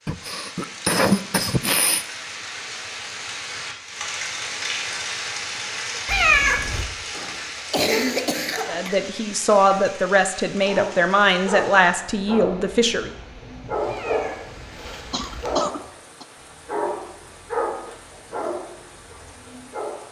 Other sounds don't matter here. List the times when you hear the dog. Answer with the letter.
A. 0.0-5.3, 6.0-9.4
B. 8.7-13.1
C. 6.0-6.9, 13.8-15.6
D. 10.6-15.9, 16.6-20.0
D.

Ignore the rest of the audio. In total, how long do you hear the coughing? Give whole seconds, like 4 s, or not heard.
5 s.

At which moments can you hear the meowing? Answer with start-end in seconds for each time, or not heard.
6.0-6.9, 13.8-15.6.